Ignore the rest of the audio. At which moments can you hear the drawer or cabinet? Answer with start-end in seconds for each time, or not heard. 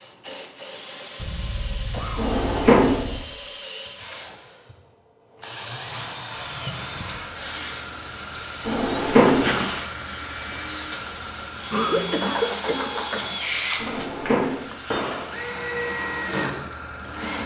2.1-3.0, 8.7-9.5, 13.8-14.5.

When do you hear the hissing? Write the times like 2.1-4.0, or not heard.
6.2-17.4.